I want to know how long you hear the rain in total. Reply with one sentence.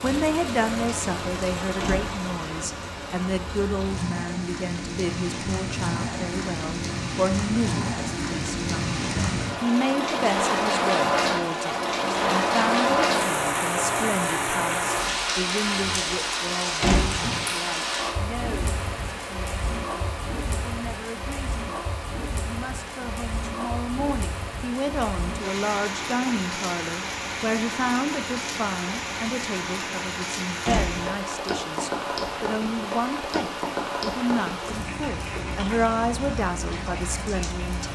The rain can be heard for 38 seconds in total.